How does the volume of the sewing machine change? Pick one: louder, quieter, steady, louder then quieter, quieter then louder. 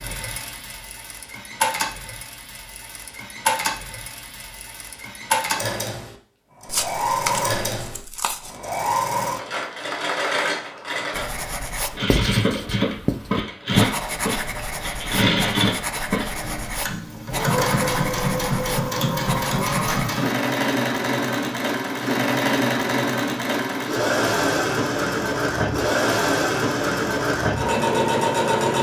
louder.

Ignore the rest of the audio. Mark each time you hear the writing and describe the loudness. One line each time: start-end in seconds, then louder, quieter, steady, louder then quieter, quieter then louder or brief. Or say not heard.
11.1-20.1 steady.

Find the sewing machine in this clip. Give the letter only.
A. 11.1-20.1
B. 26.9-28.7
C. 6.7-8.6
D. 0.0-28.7
D.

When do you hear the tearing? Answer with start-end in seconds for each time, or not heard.
6.7-8.6.